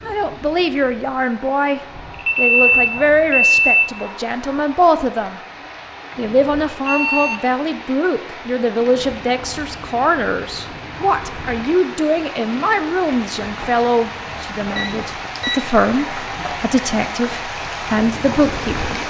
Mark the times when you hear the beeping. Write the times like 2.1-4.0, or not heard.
2.1-3.9, 6.8-7.5, 14.8-15.7.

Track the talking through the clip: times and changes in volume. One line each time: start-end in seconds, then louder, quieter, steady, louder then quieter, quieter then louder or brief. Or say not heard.
0.0-5.4 steady
6.2-18.9 steady.